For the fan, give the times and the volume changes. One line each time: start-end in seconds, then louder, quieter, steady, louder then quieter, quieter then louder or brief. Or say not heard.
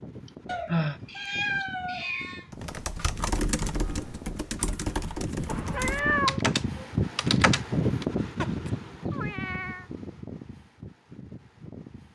0.0-12.1 louder then quieter.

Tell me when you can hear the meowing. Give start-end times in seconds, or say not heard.
0.5-2.5, 5.5-6.4, 8.4-9.8.